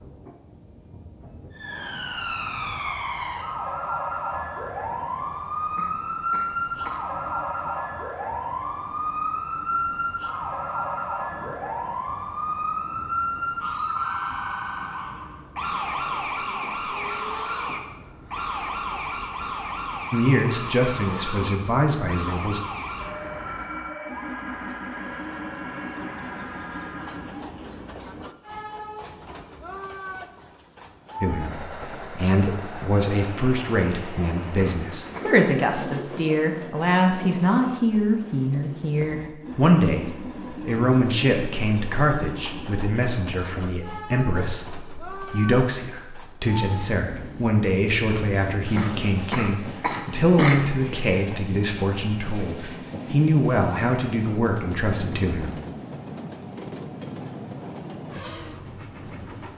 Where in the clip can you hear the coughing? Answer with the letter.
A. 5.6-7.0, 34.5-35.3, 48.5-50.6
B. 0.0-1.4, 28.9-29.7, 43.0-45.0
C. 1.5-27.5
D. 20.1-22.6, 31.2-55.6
A.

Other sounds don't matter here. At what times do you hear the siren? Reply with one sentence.
The siren can be heard from 1.5 to 27.5 s.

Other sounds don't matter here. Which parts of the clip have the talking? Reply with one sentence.
The talking can be heard from 20.1 to 22.6 s and from 31.2 to 55.6 s.